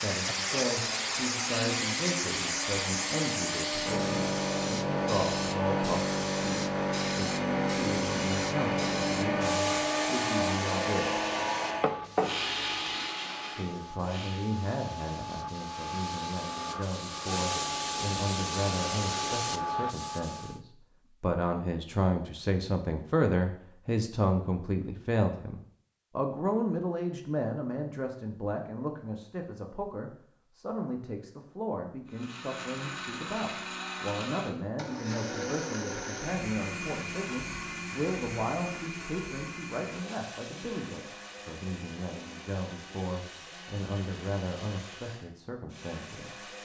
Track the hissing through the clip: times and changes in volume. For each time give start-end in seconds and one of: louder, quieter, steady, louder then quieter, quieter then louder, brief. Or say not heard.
0.0-20.6 quieter then louder.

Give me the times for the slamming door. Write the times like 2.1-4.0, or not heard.
not heard.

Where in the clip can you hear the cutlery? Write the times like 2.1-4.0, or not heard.
11.8-13.1.